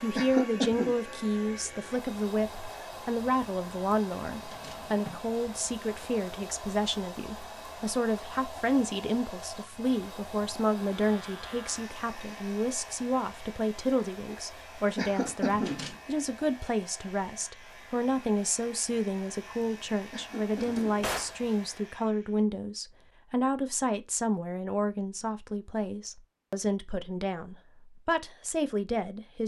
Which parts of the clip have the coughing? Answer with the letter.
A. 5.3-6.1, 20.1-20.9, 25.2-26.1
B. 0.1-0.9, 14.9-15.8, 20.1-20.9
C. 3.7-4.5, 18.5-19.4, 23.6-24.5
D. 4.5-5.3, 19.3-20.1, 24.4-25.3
B.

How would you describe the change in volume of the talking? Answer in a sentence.
The volume of the talking stays about the same.